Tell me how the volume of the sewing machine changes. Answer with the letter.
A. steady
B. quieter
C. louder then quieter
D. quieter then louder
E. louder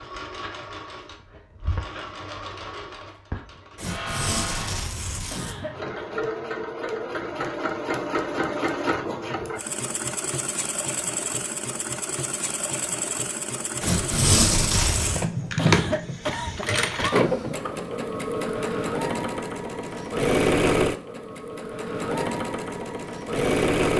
E.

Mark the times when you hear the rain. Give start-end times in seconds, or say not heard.
not heard.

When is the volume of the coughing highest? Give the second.
16 s.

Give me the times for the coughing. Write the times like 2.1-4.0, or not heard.
5.3-6.2, 15.6-17.2.